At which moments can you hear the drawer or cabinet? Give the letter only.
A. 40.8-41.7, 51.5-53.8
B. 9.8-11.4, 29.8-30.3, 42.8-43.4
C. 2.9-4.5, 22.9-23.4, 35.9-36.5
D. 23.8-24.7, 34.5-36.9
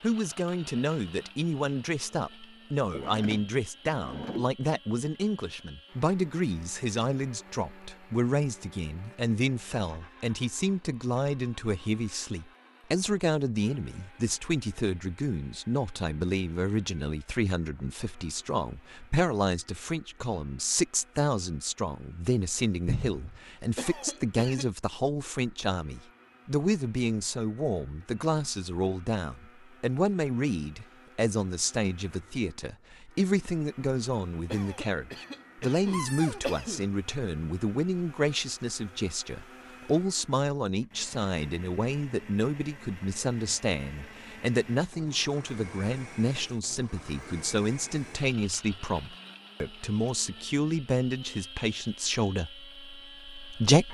C.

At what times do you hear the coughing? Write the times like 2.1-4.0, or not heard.
23.8-24.7, 34.5-36.9.